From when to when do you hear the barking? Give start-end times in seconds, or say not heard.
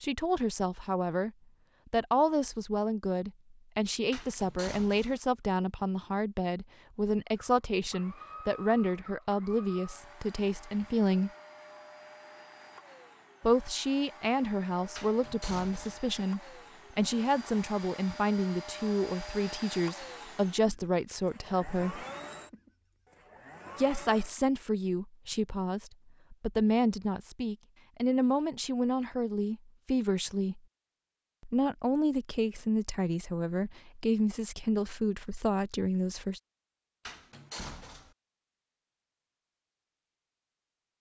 not heard.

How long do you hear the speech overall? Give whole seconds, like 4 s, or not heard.
31 s.